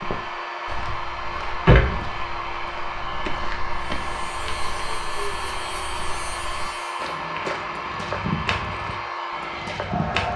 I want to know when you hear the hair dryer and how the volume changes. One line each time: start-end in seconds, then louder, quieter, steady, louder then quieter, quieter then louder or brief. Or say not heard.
0.0-10.3 steady.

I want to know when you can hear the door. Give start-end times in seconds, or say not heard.
0.7-2.3.